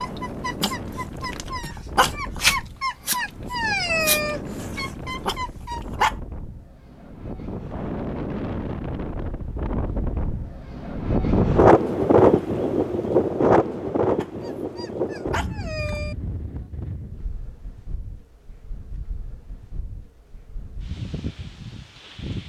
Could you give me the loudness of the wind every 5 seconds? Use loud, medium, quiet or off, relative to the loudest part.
quiet, quiet, loud, quiet, quiet.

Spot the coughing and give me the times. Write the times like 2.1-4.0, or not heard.
not heard.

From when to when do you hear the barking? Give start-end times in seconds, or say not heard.
0.0-6.2, 14.2-16.1.